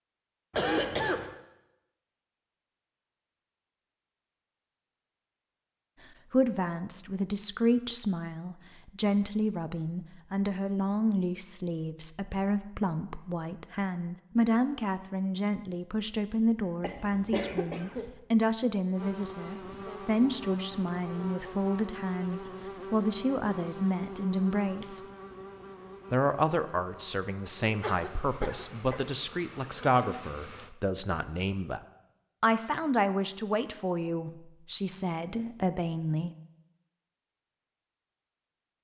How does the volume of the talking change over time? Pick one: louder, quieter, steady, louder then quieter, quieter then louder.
steady.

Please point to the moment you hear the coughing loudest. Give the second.
1 s.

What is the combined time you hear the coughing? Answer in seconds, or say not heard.
3 s.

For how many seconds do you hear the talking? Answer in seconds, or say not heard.
28 s.